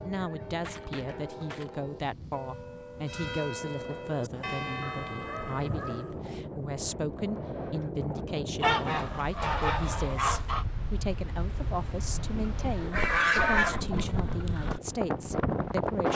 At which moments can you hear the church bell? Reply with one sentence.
The church bell can be heard from 0.0 to 6.5 s.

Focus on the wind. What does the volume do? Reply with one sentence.
The loudness of the wind goes up.